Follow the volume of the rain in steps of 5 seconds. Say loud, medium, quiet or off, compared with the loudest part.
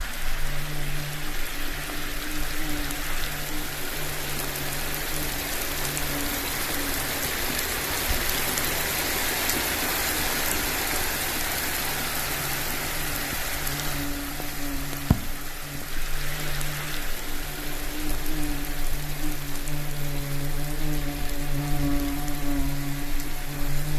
medium, loud, loud, medium, medium.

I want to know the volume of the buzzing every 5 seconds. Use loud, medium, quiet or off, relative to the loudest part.
medium, medium, medium, medium, loud.